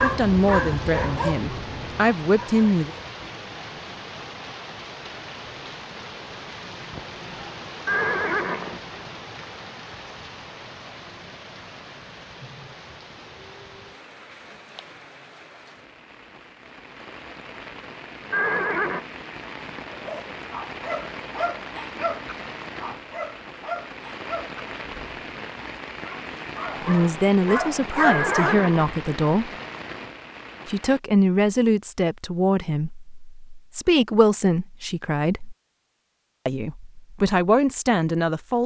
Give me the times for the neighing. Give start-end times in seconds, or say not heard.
7.8-8.8, 18.3-19.1, 28.0-28.9.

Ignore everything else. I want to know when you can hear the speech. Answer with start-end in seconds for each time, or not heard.
0.0-2.9, 26.8-29.5, 30.6-35.5, 36.5-38.6.